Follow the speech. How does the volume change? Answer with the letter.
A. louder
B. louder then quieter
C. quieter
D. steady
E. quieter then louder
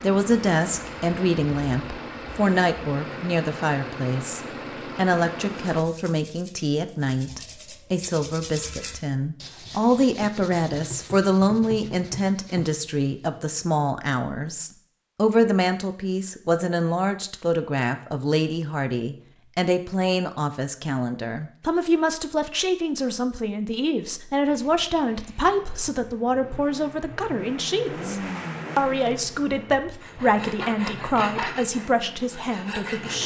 D.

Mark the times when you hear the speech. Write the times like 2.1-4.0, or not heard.
0.0-33.2.